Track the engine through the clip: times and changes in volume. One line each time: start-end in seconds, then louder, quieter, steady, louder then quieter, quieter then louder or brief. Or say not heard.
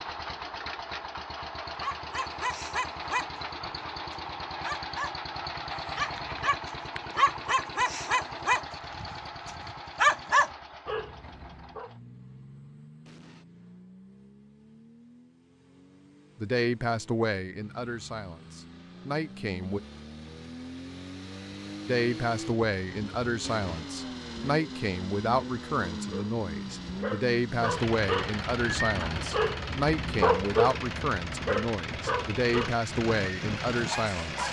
0.0-34.4 quieter then louder.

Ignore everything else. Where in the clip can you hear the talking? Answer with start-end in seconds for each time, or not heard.
16.4-19.8, 21.9-34.4.